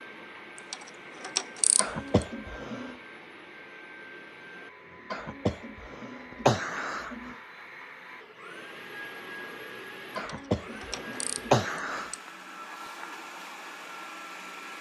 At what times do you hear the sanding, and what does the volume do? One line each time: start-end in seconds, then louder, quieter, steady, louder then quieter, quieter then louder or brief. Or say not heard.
not heard.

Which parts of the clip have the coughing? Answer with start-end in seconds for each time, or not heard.
1.8-3.0, 5.1-7.3, 10.2-12.1.